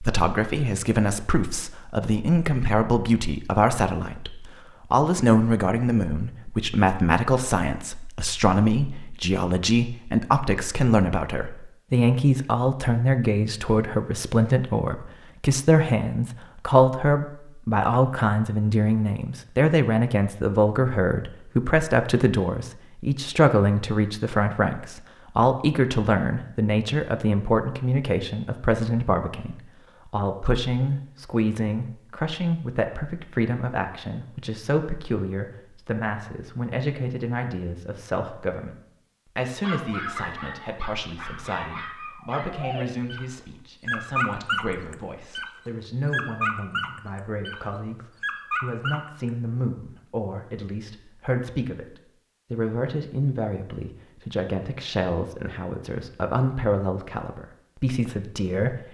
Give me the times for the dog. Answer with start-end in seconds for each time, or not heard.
39.6-49.3.